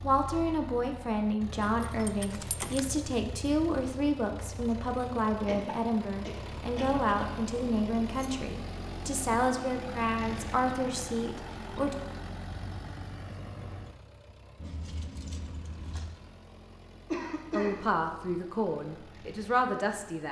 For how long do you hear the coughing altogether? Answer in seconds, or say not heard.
3 s.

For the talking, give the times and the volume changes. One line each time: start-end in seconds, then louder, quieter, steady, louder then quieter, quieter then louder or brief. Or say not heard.
0.0-11.9 steady
17.5-20.2 brief.